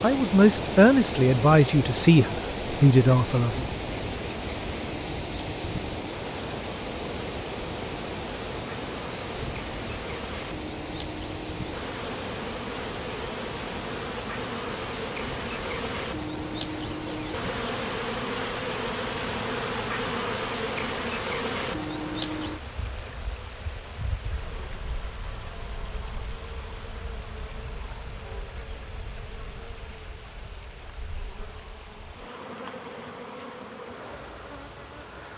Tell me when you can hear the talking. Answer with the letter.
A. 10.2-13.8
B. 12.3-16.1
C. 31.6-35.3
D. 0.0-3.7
D.